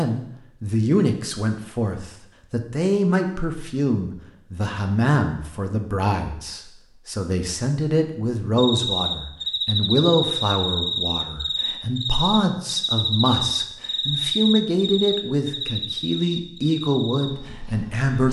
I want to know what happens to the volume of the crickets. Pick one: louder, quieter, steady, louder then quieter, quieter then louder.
quieter.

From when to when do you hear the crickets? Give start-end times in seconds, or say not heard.
8.6-18.2.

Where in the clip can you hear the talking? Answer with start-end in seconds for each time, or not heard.
0.0-18.2.